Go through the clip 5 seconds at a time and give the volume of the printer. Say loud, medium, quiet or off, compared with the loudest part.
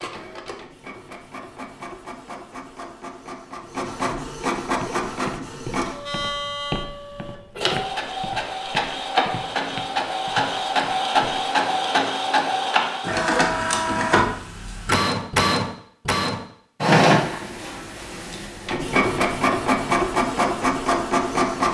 medium, medium, loud, loud, loud.